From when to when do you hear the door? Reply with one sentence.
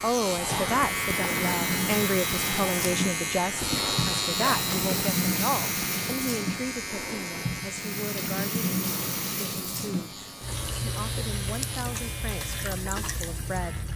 You can't hear the door here.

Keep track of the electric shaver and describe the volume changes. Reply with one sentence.
The loudness of the electric shaver goes down.